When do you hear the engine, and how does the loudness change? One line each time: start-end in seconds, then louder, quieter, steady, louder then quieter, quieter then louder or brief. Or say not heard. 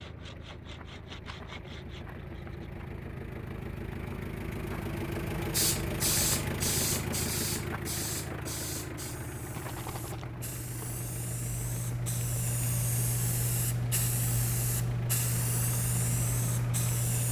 0.0-17.2 louder then quieter.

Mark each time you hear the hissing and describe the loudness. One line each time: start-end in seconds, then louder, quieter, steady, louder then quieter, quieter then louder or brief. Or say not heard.
5.5-17.2 quieter then louder.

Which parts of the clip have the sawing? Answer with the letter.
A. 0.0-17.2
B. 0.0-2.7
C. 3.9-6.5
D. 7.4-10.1
B.